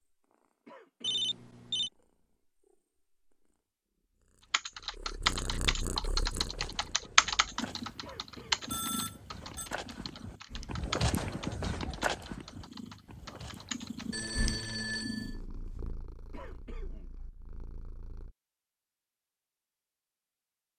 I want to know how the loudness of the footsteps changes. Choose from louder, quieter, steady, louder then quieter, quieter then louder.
louder then quieter.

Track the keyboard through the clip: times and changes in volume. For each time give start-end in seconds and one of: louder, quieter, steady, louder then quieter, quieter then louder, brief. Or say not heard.
4.5-14.1 quieter.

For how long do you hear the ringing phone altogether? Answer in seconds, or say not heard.
3 s.